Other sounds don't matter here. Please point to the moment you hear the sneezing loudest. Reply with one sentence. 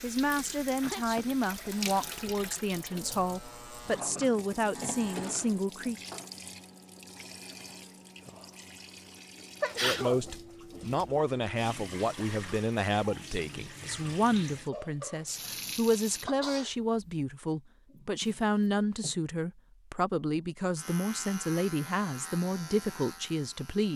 The volume of the sneezing peaks at 10 seconds.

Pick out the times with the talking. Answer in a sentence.
You can hear the talking from 0.0 to 6.1 s and from 9.8 to 23.9 s.